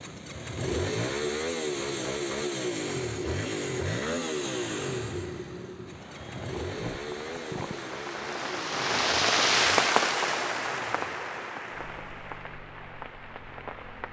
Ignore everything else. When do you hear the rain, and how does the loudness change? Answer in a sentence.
The rain can be heard from 5.8 to 14.0 s, getting louder then quieter.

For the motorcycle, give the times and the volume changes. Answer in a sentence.
The motorcycle can be heard from 0.0 to 14.0 s, getting quieter.